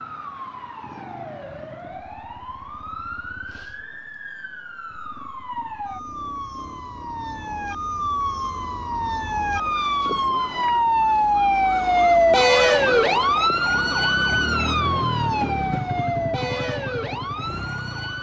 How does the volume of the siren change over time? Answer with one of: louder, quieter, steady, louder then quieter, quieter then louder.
louder then quieter.